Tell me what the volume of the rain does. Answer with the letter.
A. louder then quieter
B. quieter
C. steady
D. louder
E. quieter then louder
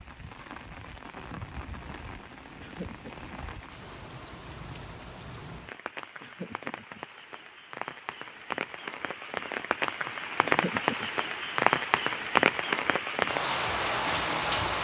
D.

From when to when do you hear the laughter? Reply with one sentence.
You can hear the laughter from 2.6 to 3.2 s, from 6.2 to 7.0 s and from 10.4 to 11.1 s.